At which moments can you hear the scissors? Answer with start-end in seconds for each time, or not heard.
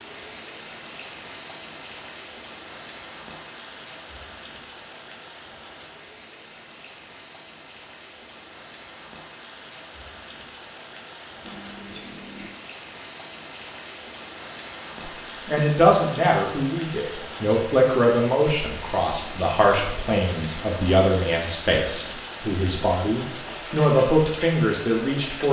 11.4-12.6.